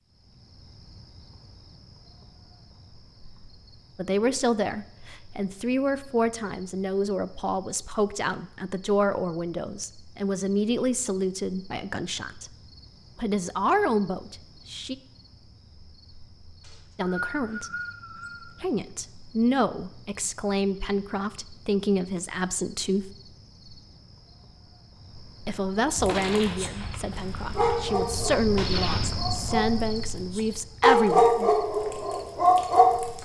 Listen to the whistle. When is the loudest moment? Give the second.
17 s.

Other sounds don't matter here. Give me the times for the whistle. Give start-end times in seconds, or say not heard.
16.6-18.5.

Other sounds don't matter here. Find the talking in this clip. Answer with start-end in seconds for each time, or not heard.
4.0-12.5, 13.2-14.9, 16.9-17.7, 18.6-23.1, 25.4-31.5.